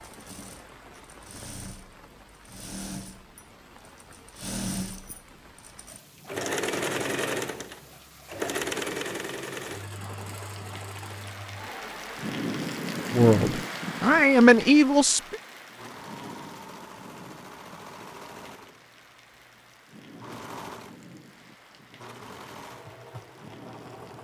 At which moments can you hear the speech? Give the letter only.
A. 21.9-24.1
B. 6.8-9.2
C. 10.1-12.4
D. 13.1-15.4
D.